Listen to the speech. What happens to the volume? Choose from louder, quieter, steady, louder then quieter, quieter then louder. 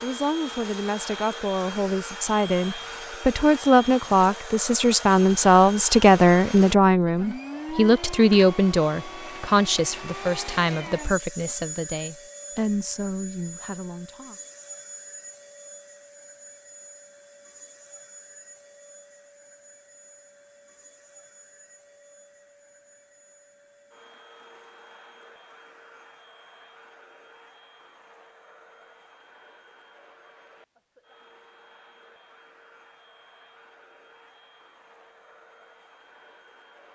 louder then quieter.